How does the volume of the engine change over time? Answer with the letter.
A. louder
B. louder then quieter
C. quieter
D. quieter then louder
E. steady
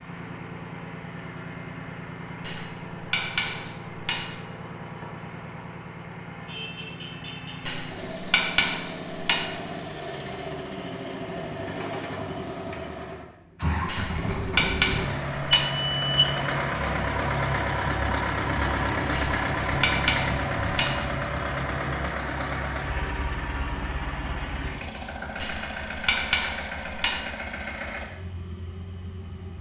B.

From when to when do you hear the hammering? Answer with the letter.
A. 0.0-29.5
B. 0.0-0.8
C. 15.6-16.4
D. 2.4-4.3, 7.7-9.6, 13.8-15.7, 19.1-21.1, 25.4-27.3
D.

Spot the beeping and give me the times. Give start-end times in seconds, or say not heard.
15.6-16.4.